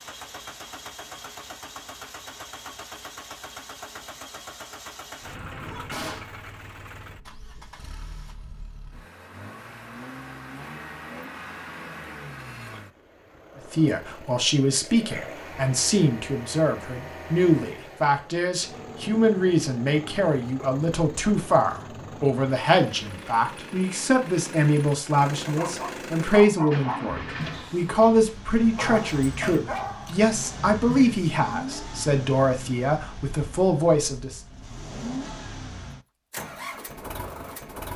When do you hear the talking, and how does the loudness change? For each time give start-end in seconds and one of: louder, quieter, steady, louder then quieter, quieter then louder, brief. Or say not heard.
13.6-34.4 steady.